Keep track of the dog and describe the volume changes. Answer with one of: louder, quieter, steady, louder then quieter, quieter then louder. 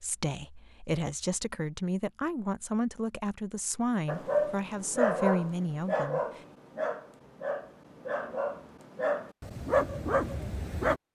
quieter then louder.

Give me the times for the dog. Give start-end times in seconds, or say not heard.
4.0-11.0.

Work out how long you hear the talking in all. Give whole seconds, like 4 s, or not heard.
6 s.